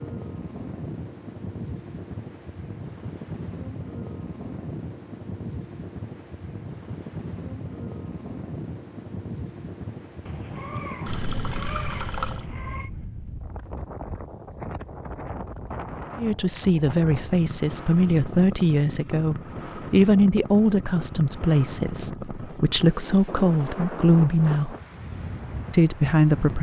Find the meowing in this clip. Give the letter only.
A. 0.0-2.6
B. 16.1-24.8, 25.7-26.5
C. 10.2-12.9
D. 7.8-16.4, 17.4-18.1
C.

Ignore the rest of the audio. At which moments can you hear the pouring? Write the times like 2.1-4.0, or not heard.
11.1-12.4.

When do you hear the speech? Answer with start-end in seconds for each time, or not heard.
16.1-24.8, 25.7-26.5.